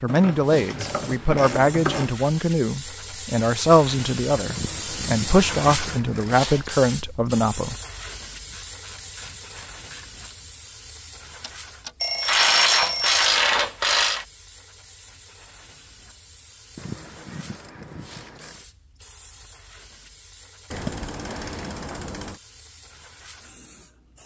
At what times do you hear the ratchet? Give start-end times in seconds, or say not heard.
0.1-2.1, 4.5-6.4, 8.4-10.4, 12.2-14.2, 16.8-18.6, 20.7-22.4.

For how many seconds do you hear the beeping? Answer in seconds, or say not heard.
2 s.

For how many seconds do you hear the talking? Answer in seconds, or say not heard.
8 s.